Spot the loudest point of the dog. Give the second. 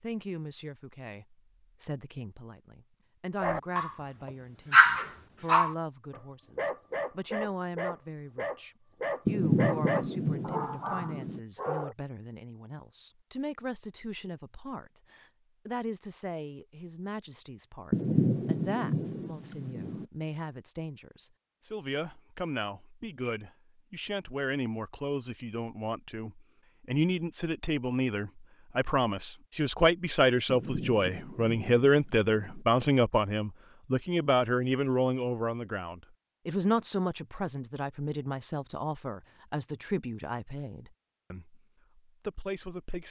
5 s.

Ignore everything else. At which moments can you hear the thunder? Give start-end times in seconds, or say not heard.
9.2-11.4, 17.9-20.1, 30.4-32.6.